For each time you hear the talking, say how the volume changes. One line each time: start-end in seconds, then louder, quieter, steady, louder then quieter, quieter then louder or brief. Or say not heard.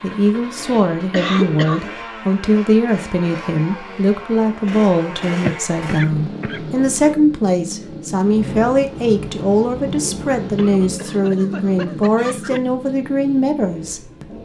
0.0-14.3 steady.